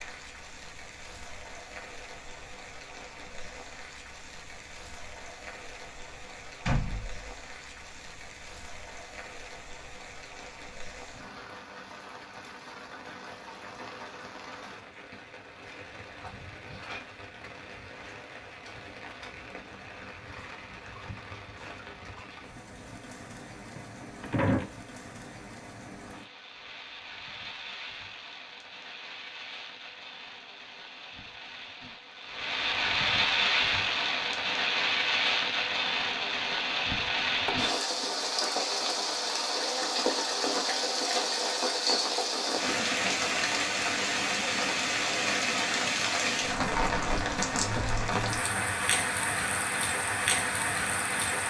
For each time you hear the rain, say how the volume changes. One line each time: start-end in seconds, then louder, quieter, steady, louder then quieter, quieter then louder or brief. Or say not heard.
0.0-51.4 louder.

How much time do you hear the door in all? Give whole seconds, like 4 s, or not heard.
2 s.